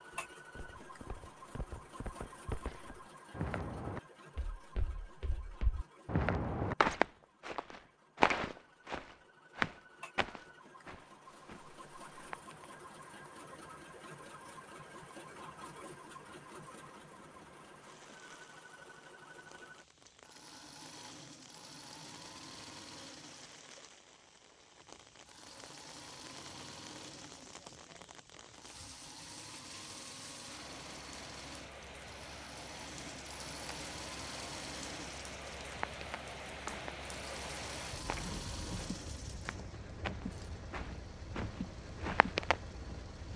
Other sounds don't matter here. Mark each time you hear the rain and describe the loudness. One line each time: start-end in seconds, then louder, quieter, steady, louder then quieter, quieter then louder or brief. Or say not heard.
11.2-43.3 louder.